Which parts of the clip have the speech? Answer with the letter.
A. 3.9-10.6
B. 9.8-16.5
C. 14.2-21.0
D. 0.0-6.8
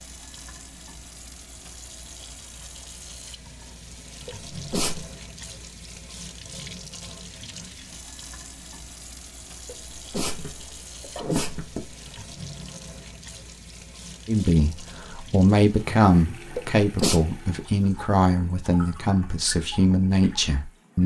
C.